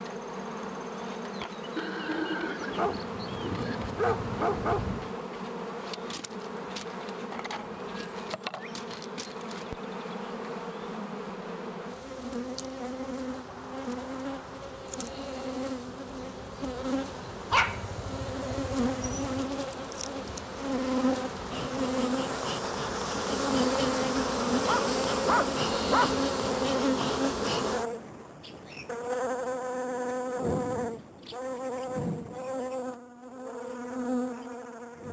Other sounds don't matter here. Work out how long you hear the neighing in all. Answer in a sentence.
The neighing can be heard for 2 seconds in total.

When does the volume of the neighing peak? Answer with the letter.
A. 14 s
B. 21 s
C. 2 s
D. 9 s
C.